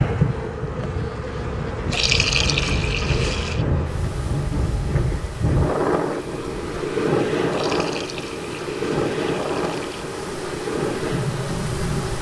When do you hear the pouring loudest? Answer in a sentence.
The volume of the pouring peaks at 2 seconds.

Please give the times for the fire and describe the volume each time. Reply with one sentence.
You can't hear the fire here.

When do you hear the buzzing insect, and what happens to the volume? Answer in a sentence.
The buzzing insect can be heard from 0.0 to 12.1 s, getting quieter then louder.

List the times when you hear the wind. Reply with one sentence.
You can hear the wind from 0.0 to 12.1 s.